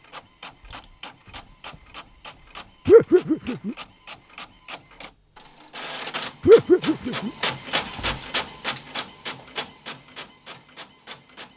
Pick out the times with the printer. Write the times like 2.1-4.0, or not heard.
0.0-11.5.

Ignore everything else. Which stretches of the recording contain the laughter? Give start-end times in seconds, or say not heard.
2.9-3.8, 6.5-7.3.